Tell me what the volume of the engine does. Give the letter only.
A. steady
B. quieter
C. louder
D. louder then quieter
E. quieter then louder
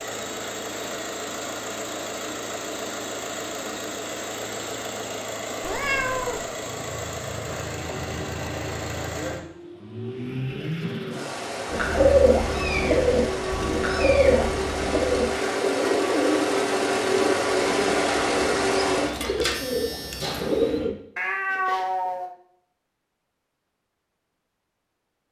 C.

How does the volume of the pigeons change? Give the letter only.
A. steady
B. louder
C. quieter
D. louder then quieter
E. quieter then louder
C.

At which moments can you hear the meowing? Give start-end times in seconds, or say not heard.
5.6-6.5, 12.5-14.6, 21.1-22.4.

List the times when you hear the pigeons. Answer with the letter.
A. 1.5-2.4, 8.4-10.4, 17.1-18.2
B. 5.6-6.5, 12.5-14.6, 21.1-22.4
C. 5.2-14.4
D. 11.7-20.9
D.